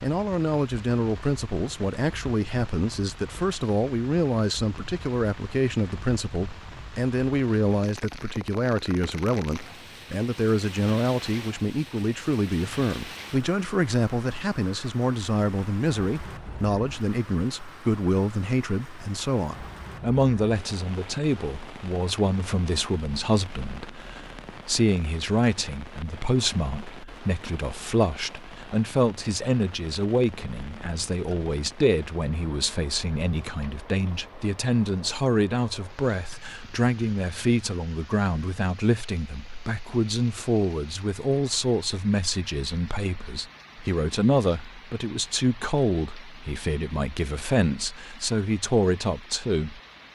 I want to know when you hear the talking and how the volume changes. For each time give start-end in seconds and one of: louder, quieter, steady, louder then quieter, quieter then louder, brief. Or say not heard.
0.0-49.8 steady.